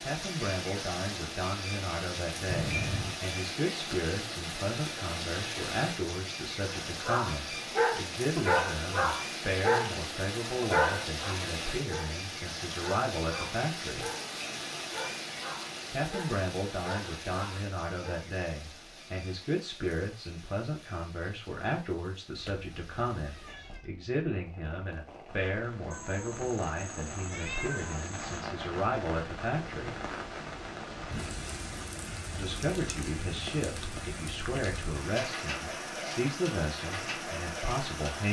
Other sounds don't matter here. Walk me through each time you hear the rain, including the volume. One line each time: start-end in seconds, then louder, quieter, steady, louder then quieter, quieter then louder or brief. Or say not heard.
0.0-38.2 quieter then louder.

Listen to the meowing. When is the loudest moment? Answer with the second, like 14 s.
3 s.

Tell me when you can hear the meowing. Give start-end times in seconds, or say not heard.
2.5-3.2, 22.4-23.9, 25.9-28.4.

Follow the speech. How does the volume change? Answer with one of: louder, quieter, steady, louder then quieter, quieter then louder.
steady.